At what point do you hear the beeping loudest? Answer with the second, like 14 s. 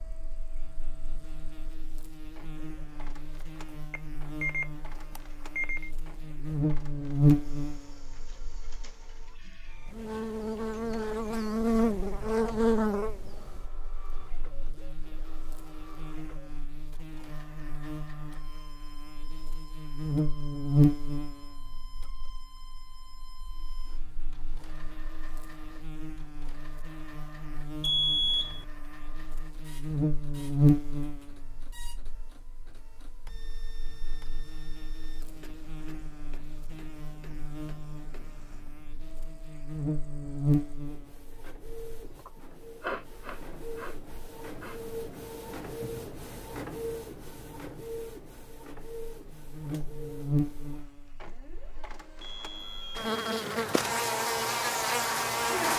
28 s.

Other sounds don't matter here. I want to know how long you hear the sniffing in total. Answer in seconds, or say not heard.
3 s.